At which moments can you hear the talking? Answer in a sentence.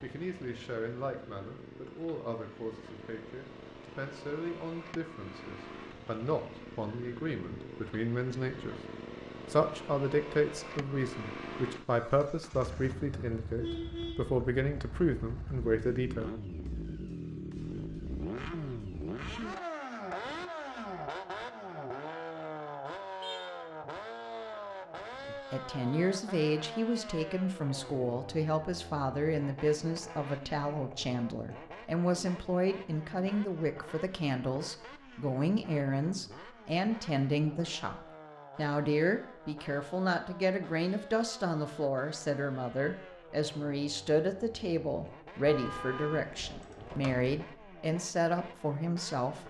You can hear the talking from 0.0 to 8.8 s, from 9.5 to 16.4 s and from 25.2 to 49.4 s.